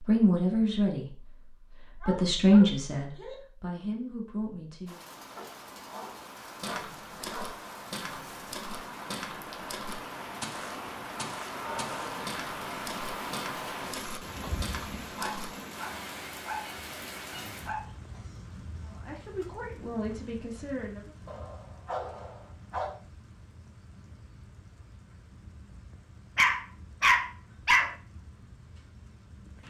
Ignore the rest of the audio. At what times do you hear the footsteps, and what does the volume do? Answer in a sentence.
The footsteps can be heard from 6.6 to 15.5 s, at a steady volume.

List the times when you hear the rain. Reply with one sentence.
You can hear the rain from 4.8 to 29.6 s.